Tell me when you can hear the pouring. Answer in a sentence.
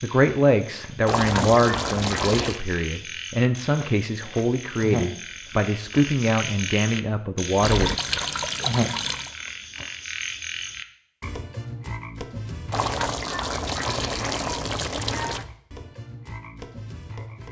You can hear the pouring from 1.1 to 2.6 s, from 7.6 to 9.3 s and from 12.7 to 15.4 s.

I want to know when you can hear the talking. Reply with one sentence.
You can hear the talking from 0.0 to 7.9 s.